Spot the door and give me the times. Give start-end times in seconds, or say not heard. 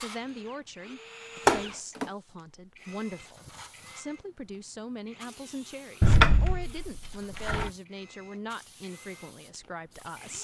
1.4-2.0, 6.0-7.7.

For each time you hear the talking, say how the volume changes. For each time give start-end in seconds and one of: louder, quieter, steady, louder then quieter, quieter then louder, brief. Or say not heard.
0.0-10.4 steady.